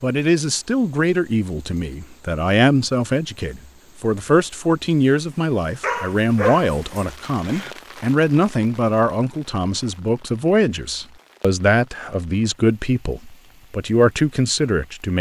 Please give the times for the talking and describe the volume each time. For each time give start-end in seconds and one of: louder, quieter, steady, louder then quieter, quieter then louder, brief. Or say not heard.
0.0-15.1 steady.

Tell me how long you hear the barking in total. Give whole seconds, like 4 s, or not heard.
2 s.